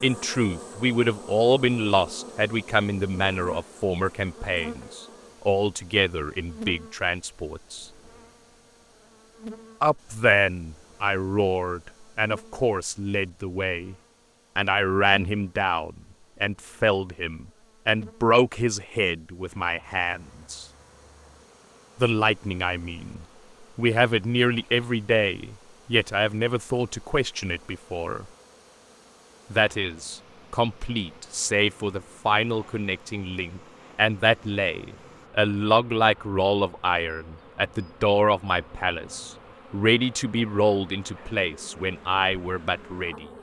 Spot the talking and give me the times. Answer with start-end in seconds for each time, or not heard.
0.0-7.8, 9.8-13.9, 14.6-20.6, 22.0-28.2, 29.5-43.2.